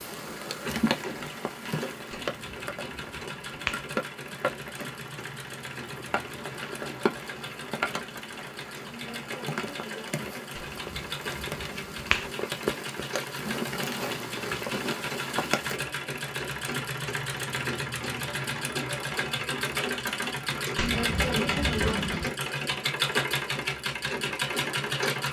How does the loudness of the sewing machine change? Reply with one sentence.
The volume of the sewing machine goes up.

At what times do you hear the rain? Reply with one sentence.
You can hear the rain from 0.0 to 15.8 s.